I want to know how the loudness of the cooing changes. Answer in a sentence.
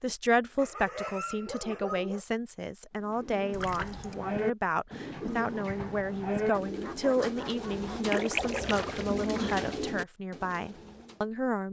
The loudness of the cooing stays about the same.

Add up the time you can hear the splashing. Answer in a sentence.
You can hear the splashing for 2 seconds altogether.